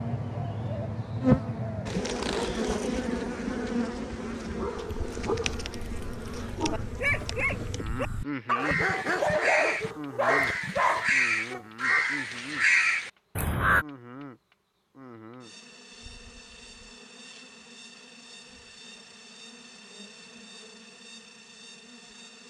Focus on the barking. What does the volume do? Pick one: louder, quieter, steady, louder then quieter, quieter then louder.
louder.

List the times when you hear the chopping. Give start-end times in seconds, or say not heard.
not heard.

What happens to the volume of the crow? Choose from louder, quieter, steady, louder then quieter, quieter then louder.
louder.